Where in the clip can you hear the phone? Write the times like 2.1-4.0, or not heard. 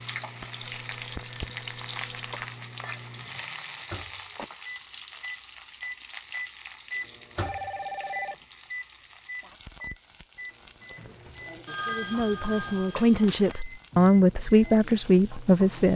0.6-2.5, 7.3-8.4, 11.7-13.6.